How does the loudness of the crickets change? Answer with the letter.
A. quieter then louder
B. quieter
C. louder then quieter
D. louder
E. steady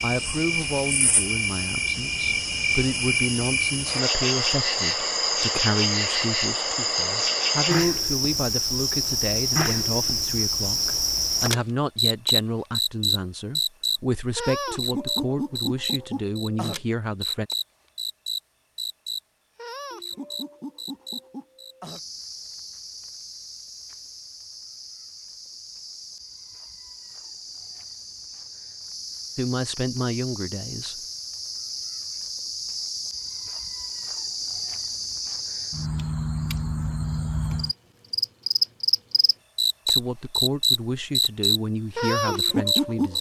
A.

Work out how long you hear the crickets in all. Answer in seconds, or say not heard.
43 s.